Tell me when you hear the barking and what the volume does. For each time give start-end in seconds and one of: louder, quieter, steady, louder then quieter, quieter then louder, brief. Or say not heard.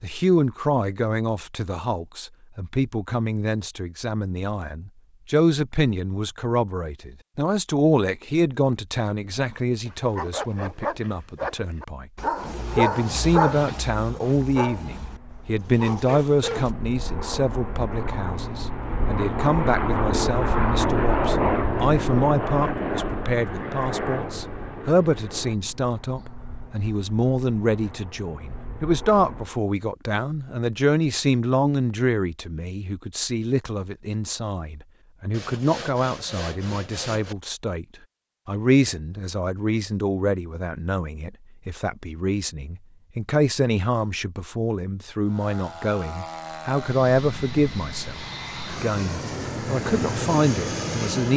9.8-16.7 louder then quieter.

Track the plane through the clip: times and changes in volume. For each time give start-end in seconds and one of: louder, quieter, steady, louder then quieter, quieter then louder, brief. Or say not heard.
14.9-29.6 louder then quieter
45.2-51.3 louder.